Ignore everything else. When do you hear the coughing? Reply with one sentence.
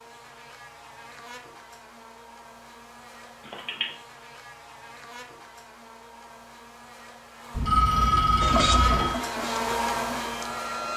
The coughing can't be heard in this clip.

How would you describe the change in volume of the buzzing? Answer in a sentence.
The volume of the buzzing goes up.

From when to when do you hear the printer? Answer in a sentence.
The printer can be heard from 8.4 to 10.9 s.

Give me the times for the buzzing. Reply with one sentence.
You can hear the buzzing from 0.0 to 10.9 s.